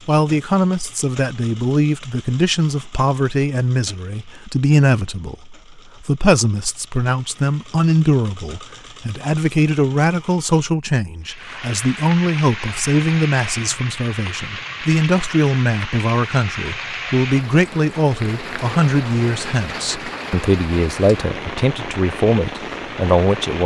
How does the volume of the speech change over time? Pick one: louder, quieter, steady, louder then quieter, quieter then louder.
steady.